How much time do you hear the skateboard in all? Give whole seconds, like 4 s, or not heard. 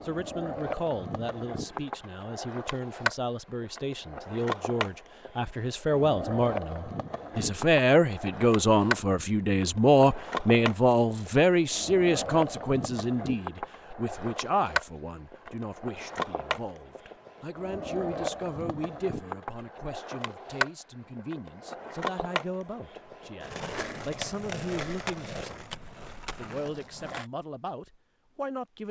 27 s.